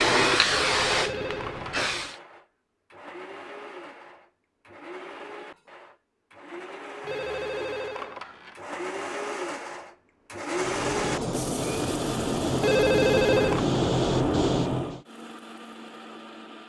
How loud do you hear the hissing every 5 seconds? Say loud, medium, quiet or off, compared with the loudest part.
loud, off, loud, off.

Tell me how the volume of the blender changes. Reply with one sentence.
The loudness of the blender goes up, then down.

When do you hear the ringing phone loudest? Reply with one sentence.
The volume of the ringing phone peaks at 13 seconds.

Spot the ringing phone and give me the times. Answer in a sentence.
You can hear the ringing phone from 0.7 to 1.9 s, from 7.0 to 8.6 s and from 12.6 to 13.7 s.